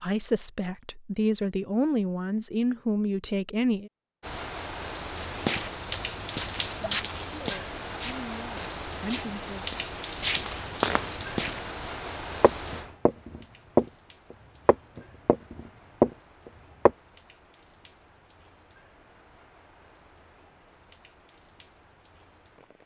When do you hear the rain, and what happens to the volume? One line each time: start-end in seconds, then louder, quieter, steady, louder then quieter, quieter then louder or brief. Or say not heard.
4.2-22.8 quieter.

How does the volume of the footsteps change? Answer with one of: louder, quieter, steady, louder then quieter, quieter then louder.
quieter then louder.